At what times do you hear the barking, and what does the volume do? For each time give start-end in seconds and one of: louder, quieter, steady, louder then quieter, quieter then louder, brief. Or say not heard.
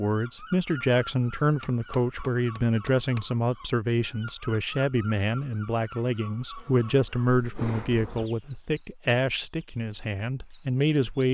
not heard.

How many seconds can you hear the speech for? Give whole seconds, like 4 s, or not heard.
11 s.